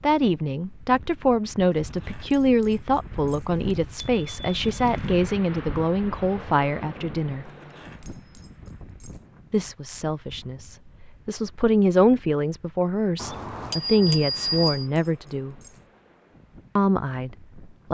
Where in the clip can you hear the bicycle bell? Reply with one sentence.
The bicycle bell can be heard from 3.5 to 5.2 s and from 13.2 to 14.9 s.